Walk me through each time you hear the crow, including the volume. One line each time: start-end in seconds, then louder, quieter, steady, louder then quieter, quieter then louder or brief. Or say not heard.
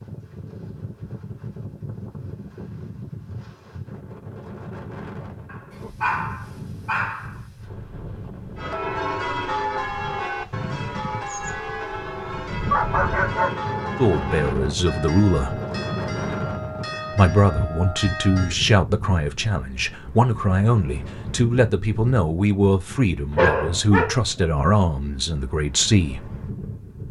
not heard.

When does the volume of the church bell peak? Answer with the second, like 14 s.
10 s.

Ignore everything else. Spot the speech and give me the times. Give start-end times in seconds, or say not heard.
13.9-15.6, 17.1-26.3.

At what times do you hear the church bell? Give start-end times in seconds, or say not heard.
8.6-18.6.